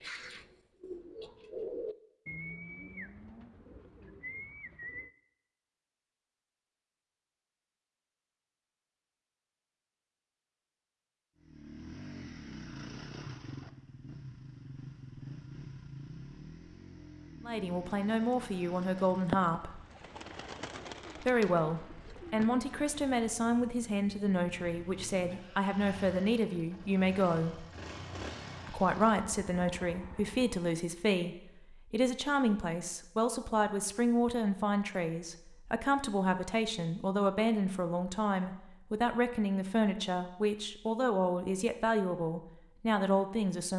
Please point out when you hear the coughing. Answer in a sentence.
You can't hear the coughing here.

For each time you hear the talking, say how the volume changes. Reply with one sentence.
The talking can be heard briefly from 17.4 to 19.9 s; from 21.2 to 27.6 s, at a steady volume; and from 28.6 to 43.7 s, at a steady volume.